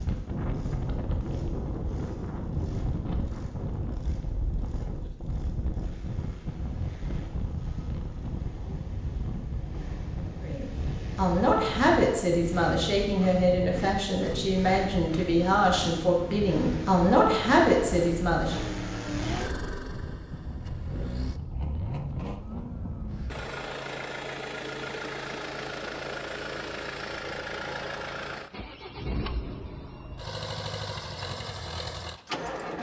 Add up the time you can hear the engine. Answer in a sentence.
You can hear the engine for 33 seconds altogether.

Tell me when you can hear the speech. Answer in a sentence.
You can hear the speech from 10.4 to 18.6 s.